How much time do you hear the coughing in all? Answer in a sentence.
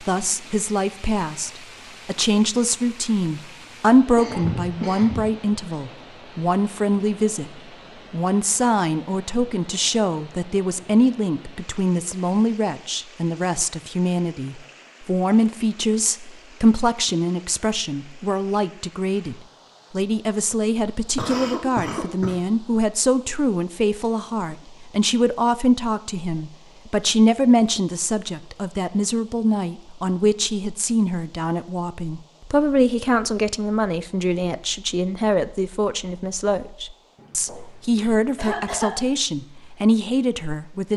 The coughing can be heard for 4 seconds in total.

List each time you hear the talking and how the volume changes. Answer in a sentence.
The talking can be heard from 0.0 to 40.9 s, at a steady volume.